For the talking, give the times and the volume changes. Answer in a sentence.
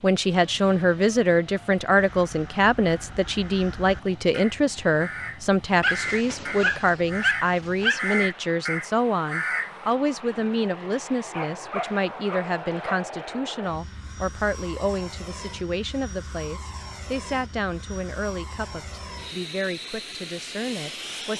You can hear the talking from 0.0 to 21.3 s, getting quieter.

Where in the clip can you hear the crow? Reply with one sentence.
The crow can be heard from 1.9 to 9.8 s.